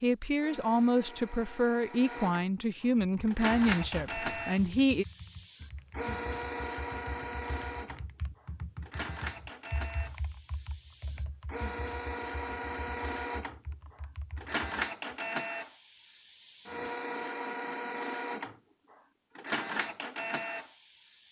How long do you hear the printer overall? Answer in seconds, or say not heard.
21 s.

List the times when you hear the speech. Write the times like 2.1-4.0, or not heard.
0.0-5.0.